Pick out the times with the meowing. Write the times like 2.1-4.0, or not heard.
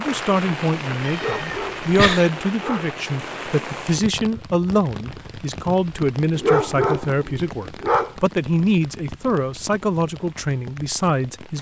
1.0-2.3.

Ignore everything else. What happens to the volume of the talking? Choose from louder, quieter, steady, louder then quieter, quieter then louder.
steady.